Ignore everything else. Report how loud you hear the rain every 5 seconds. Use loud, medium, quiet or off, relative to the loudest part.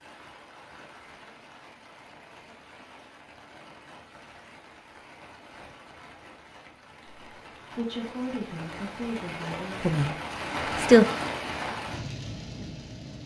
quiet, medium, loud.